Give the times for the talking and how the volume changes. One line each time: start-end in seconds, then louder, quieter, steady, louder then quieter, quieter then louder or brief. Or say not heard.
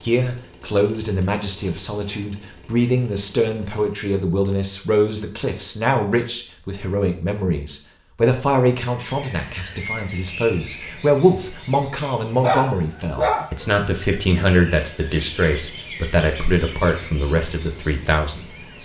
0.0-18.8 steady.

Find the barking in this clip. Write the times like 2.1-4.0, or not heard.
12.4-13.8.